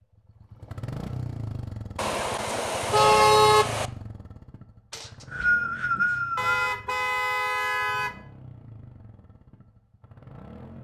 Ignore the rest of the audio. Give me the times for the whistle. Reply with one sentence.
The whistle can be heard from 4.9 to 6.7 s.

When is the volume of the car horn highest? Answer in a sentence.
The loudest moment of the car horn is at 3 seconds.